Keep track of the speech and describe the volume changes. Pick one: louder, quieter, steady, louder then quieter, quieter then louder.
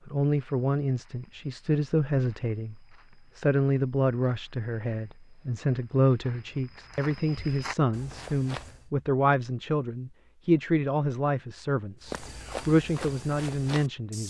steady.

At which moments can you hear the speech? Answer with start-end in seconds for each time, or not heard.
0.1-14.2.